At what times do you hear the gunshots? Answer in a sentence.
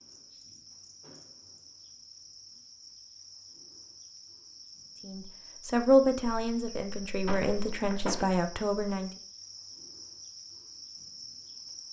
The gunshots can be heard from 6.3 to 8.2 s.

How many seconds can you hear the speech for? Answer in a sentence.
You can hear the speech for 4 seconds altogether.